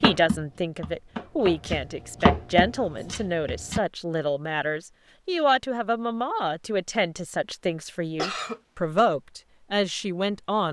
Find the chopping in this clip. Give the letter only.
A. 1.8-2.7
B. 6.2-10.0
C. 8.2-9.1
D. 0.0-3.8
D.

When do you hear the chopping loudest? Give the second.
2 s.